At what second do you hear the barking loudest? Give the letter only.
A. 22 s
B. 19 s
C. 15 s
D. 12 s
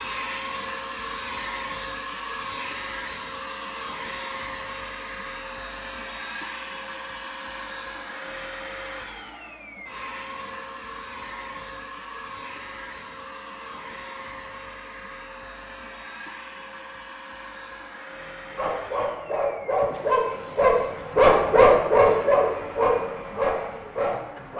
A.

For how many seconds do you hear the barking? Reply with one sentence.
You can hear the barking for 6 seconds altogether.